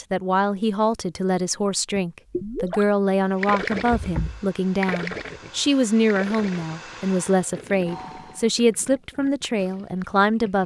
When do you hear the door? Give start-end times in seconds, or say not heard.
3.9-4.5.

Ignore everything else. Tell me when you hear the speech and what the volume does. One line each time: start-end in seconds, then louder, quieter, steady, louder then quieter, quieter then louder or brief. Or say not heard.
0.0-10.6 steady.